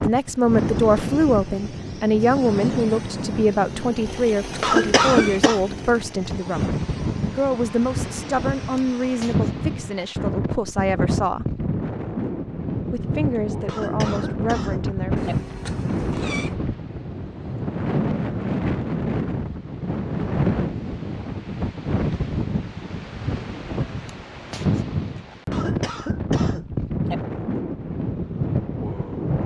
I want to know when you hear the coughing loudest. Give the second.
5 s.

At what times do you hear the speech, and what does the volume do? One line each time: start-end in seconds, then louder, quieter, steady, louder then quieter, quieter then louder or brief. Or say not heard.
0.0-11.5 quieter
12.9-15.2 brief.